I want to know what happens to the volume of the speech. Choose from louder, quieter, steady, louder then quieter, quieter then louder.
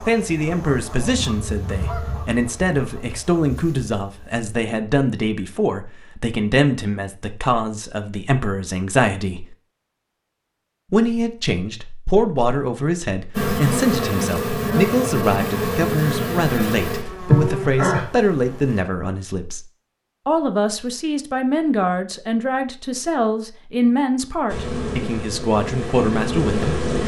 steady.